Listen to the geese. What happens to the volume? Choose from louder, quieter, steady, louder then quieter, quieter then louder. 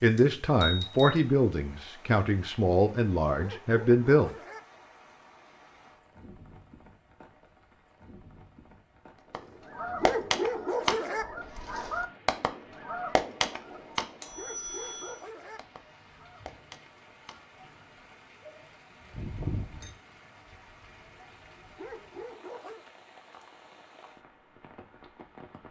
quieter.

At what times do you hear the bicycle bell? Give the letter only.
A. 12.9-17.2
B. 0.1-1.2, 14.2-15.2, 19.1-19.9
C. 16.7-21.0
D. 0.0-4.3
B.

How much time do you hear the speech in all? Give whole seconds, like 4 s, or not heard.
4 s.